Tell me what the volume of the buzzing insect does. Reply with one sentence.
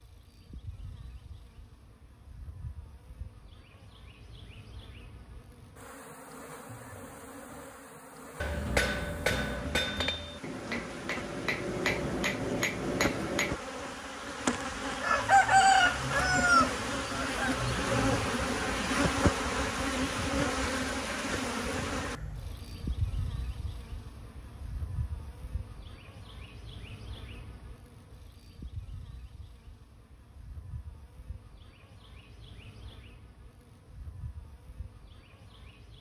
The loudness of the buzzing insect goes up, then down.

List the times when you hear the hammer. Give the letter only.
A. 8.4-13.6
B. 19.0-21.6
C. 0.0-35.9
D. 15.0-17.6
A.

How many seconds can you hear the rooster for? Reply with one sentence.
The rooster can be heard for 3 seconds in total.